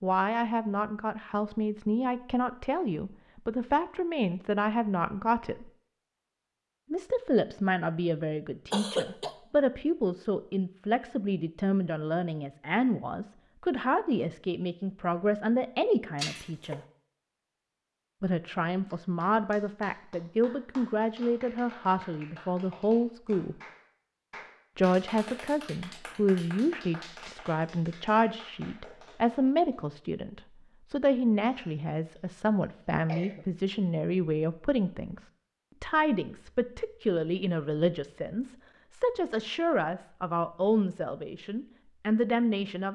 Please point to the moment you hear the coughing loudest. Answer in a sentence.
The loudest moment of the coughing is at 9 seconds.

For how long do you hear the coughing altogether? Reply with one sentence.
The coughing can be heard for 3 seconds in total.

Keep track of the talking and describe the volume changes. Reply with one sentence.
The loudness of the talking stays about the same.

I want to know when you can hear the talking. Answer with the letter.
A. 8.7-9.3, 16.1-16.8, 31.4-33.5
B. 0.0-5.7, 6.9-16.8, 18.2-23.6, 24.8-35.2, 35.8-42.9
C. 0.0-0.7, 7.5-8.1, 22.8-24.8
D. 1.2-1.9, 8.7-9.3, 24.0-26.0
B.